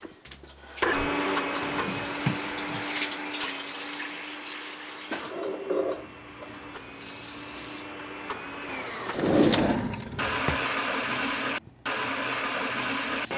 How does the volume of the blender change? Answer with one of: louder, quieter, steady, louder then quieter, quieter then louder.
quieter then louder.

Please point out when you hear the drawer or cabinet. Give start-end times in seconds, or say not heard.
1.6-2.9, 5.1-6.5, 9.2-10.6.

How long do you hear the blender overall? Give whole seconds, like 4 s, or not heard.
13 s.